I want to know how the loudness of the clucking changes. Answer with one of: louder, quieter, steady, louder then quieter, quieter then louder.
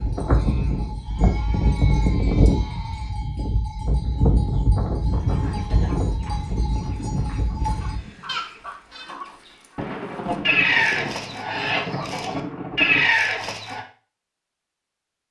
louder.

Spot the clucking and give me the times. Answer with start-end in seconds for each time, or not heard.
5.3-13.8.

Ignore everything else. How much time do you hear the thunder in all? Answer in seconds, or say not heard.
3 s.